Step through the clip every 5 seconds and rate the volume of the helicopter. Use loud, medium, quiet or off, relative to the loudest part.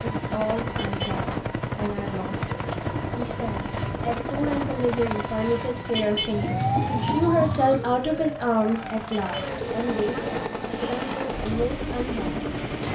loud, medium, loud.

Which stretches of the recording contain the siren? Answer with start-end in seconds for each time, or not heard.
6.3-9.8.